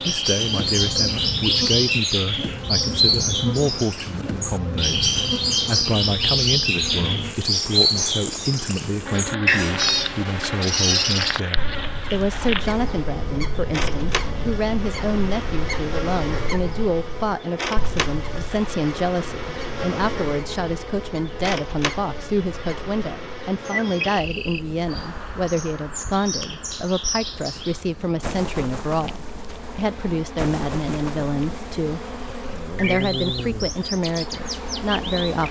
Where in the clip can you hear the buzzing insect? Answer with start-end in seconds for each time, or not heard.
0.0-35.4.